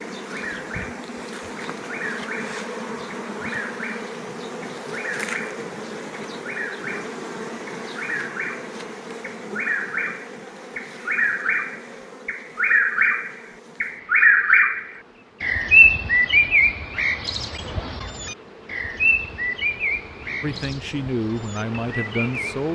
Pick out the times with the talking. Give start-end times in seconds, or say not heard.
20.4-22.7.